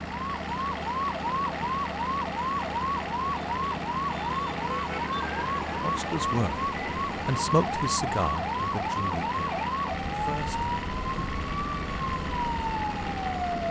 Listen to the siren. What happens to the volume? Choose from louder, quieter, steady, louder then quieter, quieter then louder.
steady.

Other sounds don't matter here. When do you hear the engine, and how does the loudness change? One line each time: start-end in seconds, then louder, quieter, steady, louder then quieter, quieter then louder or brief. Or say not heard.
0.0-13.6 steady.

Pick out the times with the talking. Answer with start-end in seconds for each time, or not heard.
5.8-11.3.